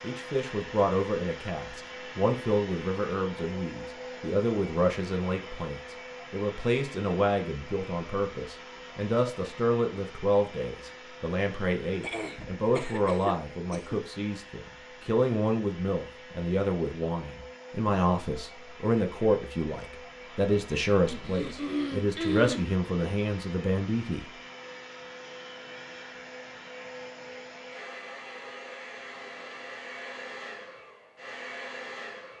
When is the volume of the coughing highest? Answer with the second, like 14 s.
22 s.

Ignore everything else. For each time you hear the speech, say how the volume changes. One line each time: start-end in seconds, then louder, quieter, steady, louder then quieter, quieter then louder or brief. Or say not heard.
0.0-24.2 steady.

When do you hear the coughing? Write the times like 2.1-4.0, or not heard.
12.0-14.0, 21.1-22.6.